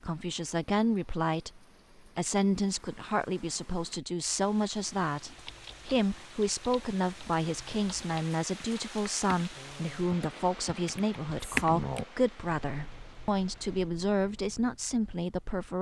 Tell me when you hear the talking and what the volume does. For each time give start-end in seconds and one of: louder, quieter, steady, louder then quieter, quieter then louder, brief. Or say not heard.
0.0-15.7 steady.